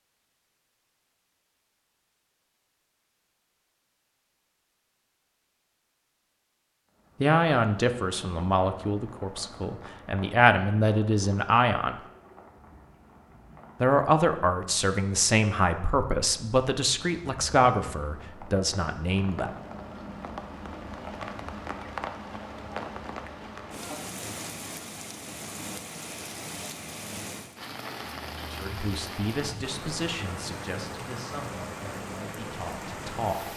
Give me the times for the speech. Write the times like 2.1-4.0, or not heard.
7.2-11.9, 13.8-19.5, 28.6-33.5.